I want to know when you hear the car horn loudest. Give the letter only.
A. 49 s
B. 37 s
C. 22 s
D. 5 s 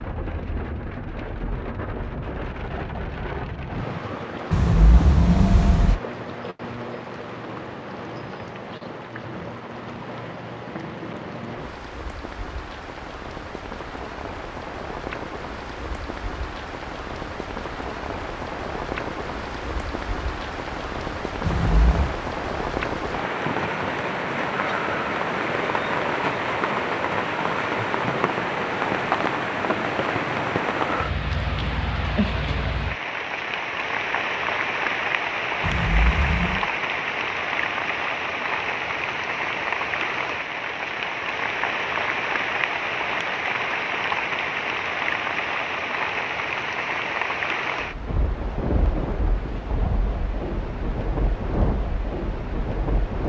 D.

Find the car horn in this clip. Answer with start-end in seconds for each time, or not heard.
4.5-6.0, 21.4-22.1, 35.6-36.6.